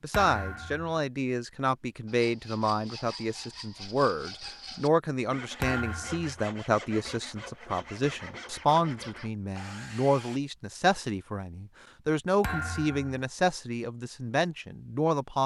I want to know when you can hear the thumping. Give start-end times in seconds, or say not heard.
0.1-1.0, 5.6-6.3, 12.4-13.2.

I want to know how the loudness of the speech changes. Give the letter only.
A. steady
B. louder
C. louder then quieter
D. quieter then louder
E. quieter
A.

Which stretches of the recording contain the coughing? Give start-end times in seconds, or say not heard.
not heard.